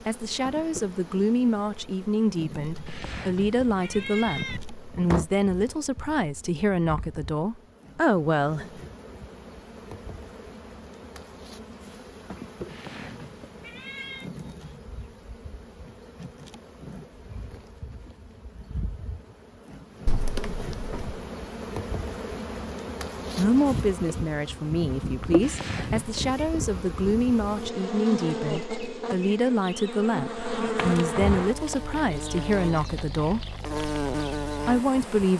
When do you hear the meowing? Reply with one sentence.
The meowing can be heard from 2.9 to 4.6 s, from 12.7 to 14.3 s and from 25.4 to 26.5 s.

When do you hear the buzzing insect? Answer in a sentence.
You can hear the buzzing insect from 0.0 to 35.3 s.